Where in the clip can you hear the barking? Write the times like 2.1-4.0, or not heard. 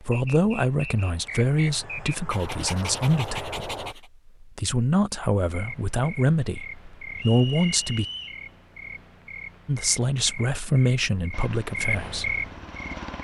2.3-4.1.